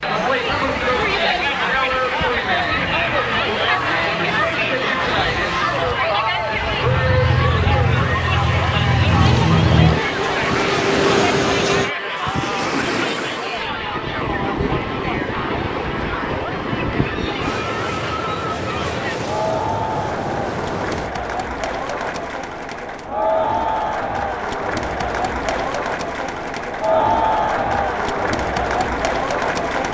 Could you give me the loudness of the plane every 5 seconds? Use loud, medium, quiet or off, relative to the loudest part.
quiet, loud, loud, off, off, off.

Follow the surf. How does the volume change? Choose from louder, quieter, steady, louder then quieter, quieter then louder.
louder.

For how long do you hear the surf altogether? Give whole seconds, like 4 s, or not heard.
21 s.